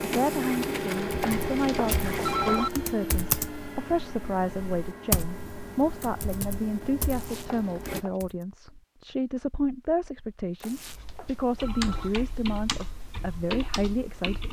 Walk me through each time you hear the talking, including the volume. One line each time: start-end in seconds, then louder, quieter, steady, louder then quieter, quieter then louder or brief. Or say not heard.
0.0-14.4 steady.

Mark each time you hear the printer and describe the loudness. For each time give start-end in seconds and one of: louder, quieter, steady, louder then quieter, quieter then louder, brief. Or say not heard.
0.0-8.1 quieter.